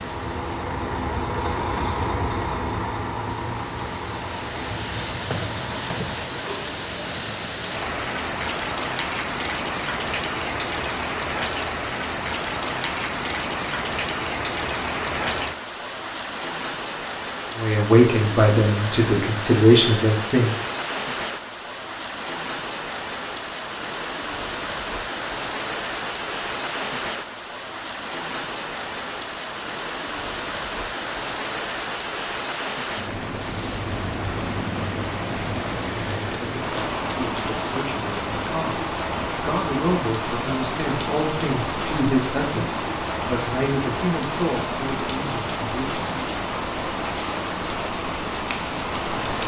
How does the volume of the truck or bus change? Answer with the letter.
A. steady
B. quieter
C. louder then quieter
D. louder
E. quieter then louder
B.